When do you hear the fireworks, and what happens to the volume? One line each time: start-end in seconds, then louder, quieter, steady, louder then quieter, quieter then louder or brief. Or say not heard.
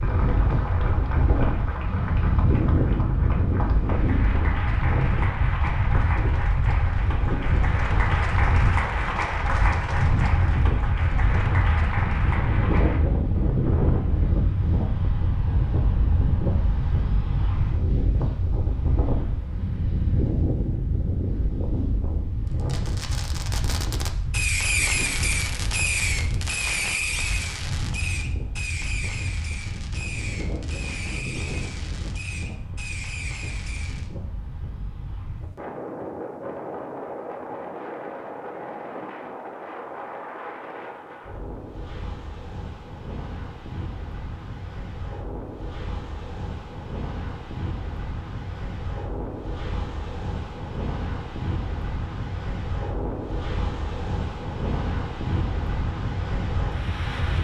22.4-34.1 quieter.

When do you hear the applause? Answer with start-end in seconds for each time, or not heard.
0.0-13.1.